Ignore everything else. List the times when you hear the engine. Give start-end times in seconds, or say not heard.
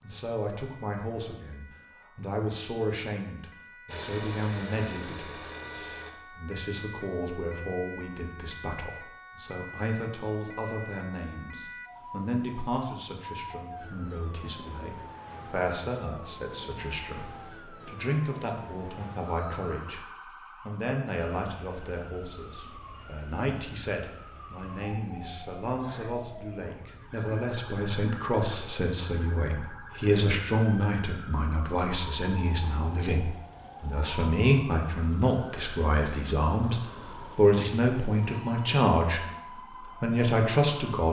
3.9-6.2.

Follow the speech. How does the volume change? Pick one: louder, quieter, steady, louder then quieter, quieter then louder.
louder.